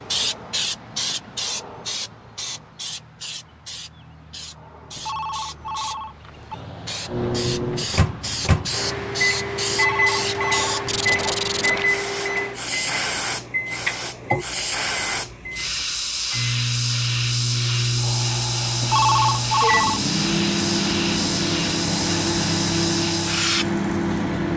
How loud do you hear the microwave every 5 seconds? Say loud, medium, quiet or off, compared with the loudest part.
off, loud, loud, loud, loud.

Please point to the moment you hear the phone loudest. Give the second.
19 s.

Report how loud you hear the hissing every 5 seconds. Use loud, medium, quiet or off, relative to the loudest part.
medium, medium, loud, loud, loud.